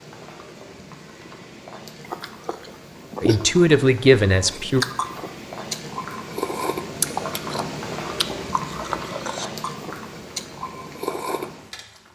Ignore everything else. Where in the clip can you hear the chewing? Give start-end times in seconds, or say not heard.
2.0-11.5.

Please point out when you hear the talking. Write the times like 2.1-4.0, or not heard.
3.2-4.8.